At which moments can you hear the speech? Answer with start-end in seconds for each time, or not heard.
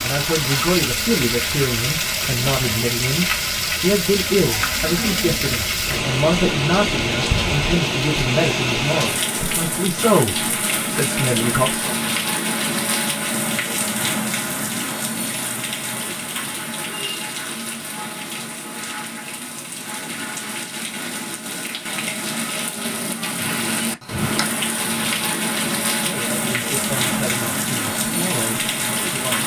0.0-11.9, 26.0-29.4.